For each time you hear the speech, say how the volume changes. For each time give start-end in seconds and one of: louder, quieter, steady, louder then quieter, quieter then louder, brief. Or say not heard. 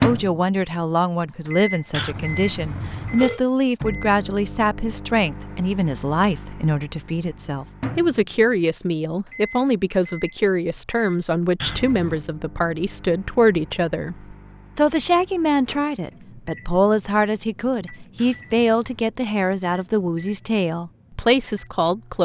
0.0-22.2 steady.